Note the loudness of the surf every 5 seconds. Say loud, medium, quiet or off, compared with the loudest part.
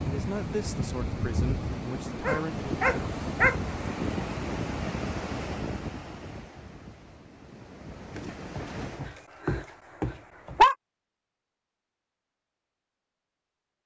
loud, medium, off.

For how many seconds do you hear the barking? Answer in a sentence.
The barking can be heard for 4 seconds in total.